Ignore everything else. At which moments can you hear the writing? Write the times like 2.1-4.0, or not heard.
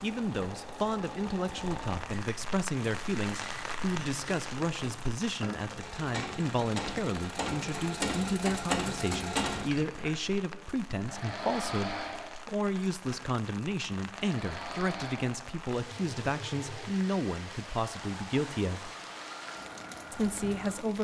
not heard.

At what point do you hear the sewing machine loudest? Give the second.
9 s.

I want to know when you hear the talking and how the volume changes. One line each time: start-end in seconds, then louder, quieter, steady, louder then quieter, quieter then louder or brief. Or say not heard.
0.0-18.9 steady
20.1-20.9 brief.